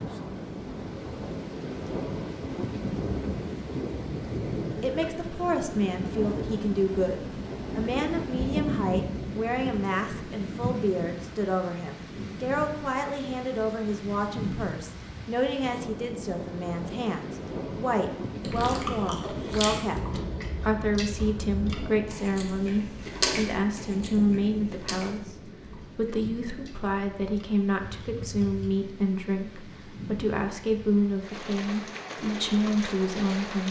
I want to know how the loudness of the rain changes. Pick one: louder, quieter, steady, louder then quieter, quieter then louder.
quieter.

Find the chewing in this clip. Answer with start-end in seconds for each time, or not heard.
18.4-28.7.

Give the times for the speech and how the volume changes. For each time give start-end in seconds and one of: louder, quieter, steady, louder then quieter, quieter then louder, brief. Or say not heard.
4.8-33.6 steady.